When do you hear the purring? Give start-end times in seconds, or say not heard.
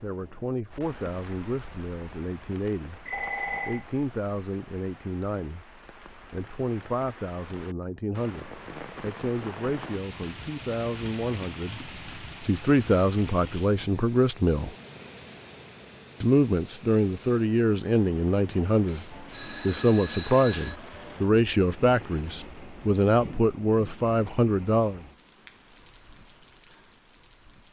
not heard.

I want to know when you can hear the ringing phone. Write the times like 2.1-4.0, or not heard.
3.0-3.9, 18.9-20.8.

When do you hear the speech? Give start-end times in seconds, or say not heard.
0.0-3.0, 3.6-5.7, 6.3-11.8, 12.4-14.8, 16.2-25.0.